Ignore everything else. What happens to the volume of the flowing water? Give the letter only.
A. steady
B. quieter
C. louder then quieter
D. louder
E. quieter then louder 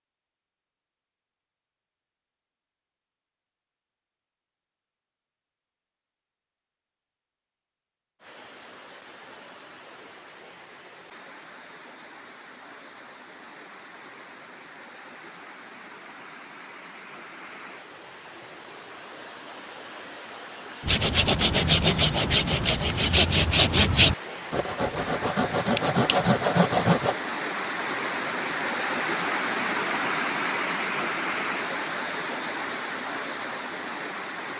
D.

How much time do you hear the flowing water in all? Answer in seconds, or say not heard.
26 s.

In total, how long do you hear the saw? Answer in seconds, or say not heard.
6 s.